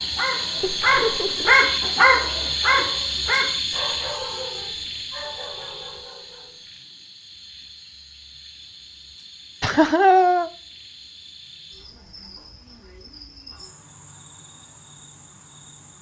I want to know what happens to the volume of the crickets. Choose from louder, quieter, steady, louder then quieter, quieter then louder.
quieter.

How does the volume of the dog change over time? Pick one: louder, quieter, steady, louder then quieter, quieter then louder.
quieter.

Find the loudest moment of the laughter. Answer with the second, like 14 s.
10 s.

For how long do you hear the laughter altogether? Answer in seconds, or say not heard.
2 s.